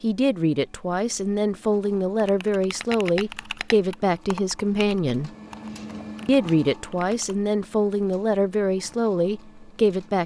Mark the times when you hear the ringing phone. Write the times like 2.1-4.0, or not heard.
not heard.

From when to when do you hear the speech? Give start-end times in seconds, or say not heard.
0.0-5.3, 6.2-10.2.